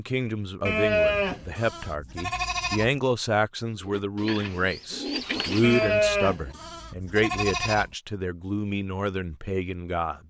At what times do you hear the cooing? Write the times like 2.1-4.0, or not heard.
3.6-6.0.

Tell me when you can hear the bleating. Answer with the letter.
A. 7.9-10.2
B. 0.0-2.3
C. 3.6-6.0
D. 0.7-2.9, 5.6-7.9
D.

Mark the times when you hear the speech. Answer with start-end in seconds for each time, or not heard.
0.0-10.2.